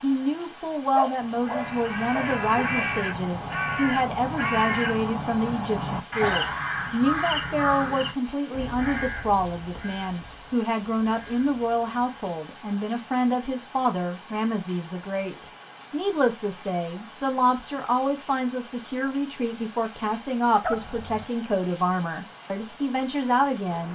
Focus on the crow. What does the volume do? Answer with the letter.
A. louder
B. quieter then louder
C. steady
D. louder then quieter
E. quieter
E.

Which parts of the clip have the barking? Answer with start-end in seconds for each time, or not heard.
0.9-2.9, 20.6-21.2.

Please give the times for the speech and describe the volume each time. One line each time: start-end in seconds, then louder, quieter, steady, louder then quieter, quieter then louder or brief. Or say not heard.
0.0-23.9 steady.